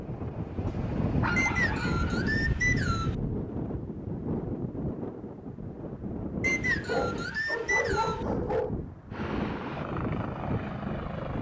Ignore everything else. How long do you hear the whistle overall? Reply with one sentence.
The whistle can be heard for 4 seconds in total.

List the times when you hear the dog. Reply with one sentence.
You can hear the dog from 1.2 to 2.2 s and from 6.8 to 8.7 s.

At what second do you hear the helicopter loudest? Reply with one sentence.
The volume of the helicopter peaks at 10 seconds.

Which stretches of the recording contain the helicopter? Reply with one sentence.
You can hear the helicopter from 0.0 to 1.4 s and from 9.1 to 11.3 s.